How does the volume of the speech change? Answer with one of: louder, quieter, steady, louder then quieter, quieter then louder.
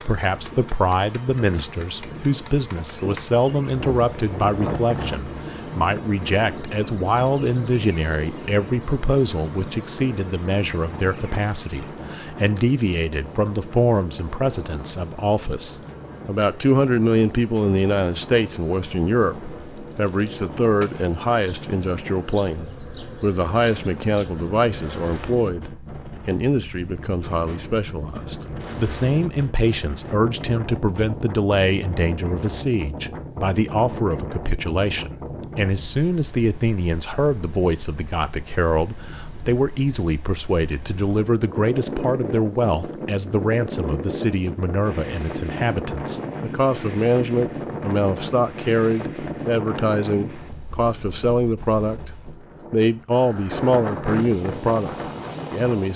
steady.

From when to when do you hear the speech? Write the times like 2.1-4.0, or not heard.
0.0-55.9.